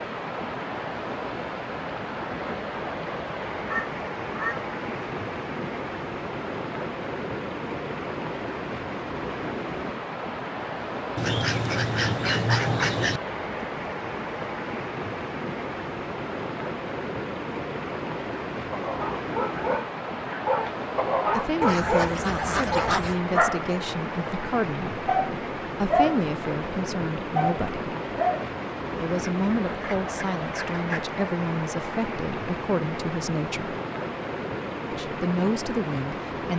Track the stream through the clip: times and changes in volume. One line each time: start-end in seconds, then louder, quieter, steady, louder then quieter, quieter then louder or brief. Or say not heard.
0.0-36.5 steady.